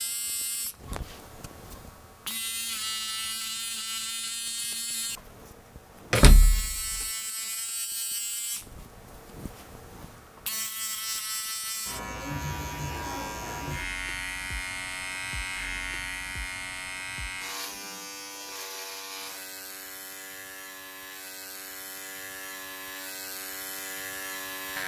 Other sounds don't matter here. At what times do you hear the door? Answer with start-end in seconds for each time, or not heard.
6.1-7.0.